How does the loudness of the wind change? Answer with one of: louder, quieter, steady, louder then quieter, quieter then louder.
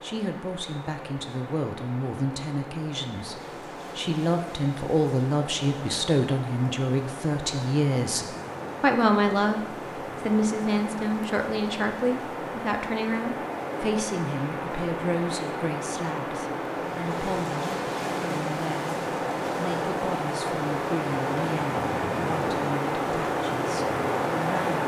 louder.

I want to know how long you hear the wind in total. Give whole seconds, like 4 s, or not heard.
25 s.